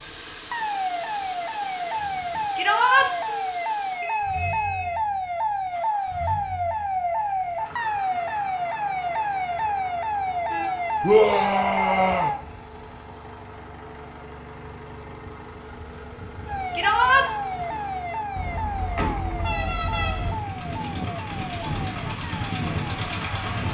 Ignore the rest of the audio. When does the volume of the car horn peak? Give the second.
20 s.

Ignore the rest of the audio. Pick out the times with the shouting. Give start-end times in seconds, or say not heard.
2.5-3.1, 11.0-12.3, 16.8-17.2.